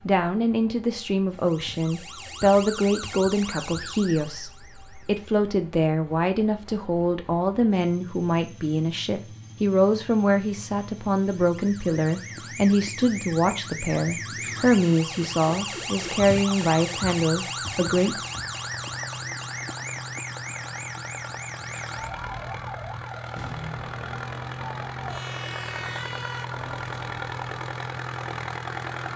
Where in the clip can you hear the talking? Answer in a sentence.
You can hear the talking from 0.1 to 18.2 s.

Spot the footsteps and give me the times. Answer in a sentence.
You can't hear the footsteps here.